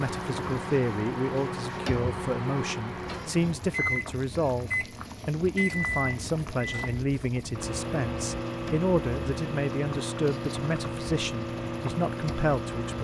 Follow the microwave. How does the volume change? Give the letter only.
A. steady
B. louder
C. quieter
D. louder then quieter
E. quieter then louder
A.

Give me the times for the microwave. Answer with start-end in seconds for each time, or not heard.
0.0-12.9.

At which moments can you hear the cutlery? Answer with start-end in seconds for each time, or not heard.
not heard.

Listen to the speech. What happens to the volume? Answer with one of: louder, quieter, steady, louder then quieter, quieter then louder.
steady.